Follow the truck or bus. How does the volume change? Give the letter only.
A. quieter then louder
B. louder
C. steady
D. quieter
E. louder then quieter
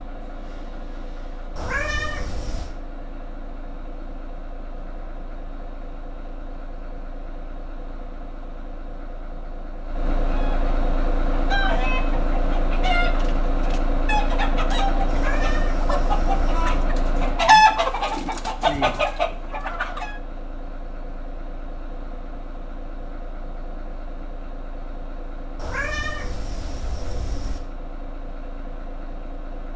E.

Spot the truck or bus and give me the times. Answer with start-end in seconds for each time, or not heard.
0.0-29.7.